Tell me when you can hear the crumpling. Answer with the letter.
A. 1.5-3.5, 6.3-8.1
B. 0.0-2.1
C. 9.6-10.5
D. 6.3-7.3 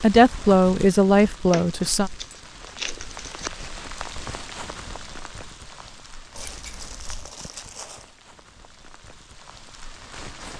A.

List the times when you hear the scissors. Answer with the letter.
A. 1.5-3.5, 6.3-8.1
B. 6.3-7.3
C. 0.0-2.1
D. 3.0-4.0
B.